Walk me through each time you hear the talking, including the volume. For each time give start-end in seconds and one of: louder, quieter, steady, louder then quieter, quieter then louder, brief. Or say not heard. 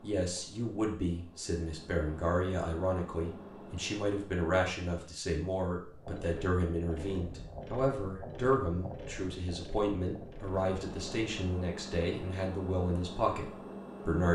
0.0-14.3 steady.